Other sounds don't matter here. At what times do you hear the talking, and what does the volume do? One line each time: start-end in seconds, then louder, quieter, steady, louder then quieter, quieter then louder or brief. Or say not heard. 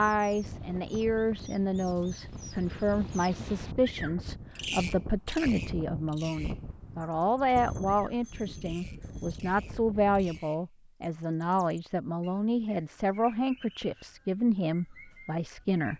0.0-15.9 steady.